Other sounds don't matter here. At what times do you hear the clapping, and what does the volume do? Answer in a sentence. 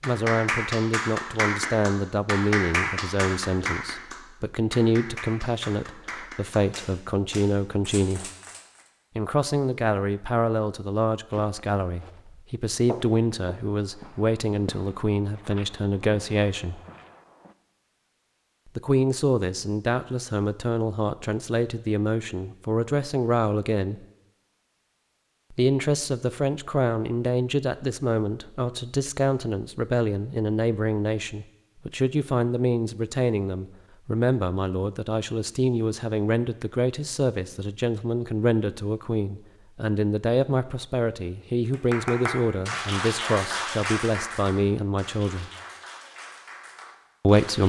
The clapping can be heard from 0.0 to 8.9 s, getting quieter; and from 41.7 to 47.6 s, getting quieter.